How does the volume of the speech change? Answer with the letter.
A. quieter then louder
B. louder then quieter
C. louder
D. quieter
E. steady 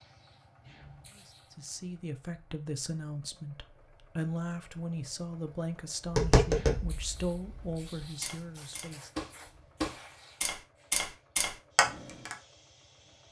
E.